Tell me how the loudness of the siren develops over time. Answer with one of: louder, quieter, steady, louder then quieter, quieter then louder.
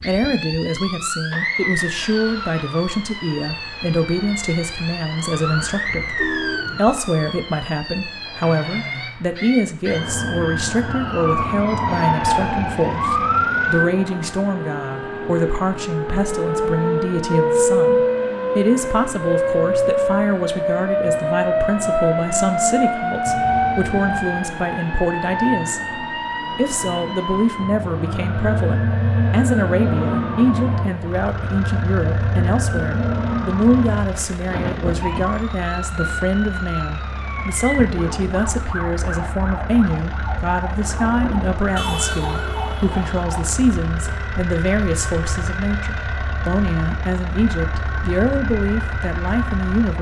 louder then quieter.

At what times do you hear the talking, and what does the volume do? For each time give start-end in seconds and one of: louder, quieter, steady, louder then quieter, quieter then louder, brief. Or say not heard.
0.0-49.9 steady.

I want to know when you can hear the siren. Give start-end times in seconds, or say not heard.
0.0-49.9.